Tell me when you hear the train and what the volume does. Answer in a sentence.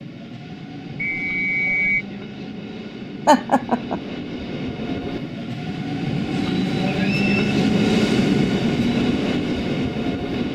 The train can be heard from 0.0 to 10.5 s, getting louder.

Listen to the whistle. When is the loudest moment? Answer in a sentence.
The loudest moment of the whistle is at 2 seconds.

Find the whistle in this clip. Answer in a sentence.
The whistle can be heard from 1.0 to 2.0 s and from 7.0 to 7.5 s.